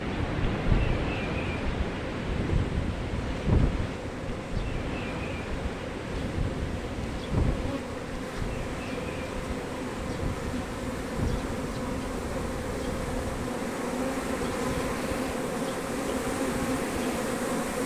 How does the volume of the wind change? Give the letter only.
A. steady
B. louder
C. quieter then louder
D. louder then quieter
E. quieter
E.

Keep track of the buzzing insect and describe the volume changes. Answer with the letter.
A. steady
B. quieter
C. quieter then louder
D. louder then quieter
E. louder
E.